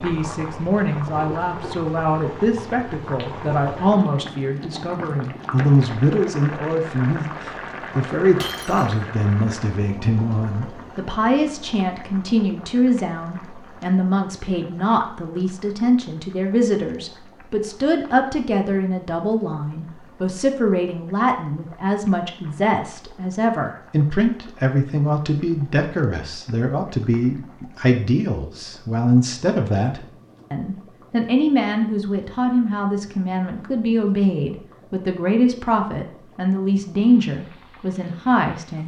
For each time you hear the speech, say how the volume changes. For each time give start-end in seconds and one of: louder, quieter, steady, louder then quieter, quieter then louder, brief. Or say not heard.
0.0-38.8 steady.